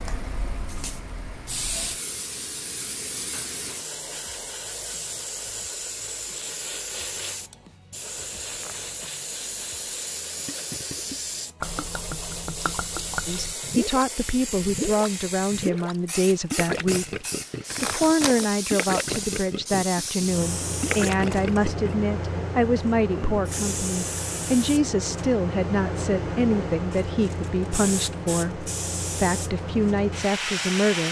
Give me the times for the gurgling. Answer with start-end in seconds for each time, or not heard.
10.4-22.1.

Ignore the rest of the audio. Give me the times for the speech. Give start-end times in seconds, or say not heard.
13.2-17.1, 17.8-31.0.